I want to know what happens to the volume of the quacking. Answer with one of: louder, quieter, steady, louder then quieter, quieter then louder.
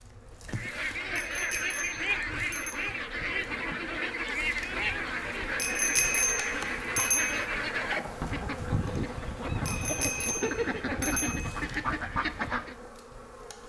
steady.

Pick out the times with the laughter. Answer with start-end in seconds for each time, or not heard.
0.5-1.2, 10.2-11.3.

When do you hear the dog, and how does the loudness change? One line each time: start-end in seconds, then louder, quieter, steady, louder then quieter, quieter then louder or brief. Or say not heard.
not heard.